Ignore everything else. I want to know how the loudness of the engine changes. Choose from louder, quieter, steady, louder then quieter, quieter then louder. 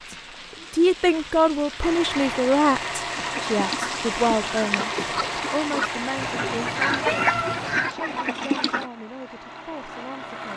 quieter.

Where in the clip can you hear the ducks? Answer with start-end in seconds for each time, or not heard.
3.1-8.9.